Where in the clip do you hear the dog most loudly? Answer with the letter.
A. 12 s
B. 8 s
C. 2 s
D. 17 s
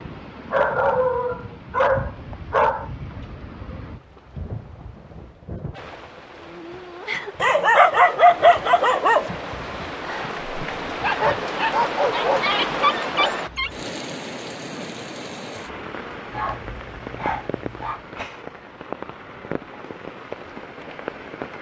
B.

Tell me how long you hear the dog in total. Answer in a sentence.
You can hear the dog for 9 seconds altogether.